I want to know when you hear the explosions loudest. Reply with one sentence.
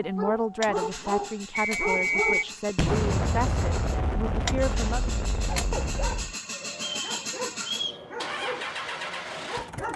The loudest moment of the explosions is at 3 seconds.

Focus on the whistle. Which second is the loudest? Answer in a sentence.
The loudest moment of the whistle is at 2 seconds.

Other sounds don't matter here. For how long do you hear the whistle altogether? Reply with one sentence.
The whistle can be heard for 2 seconds in total.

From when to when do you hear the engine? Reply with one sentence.
You can hear the engine from 0.0 to 9.9 s.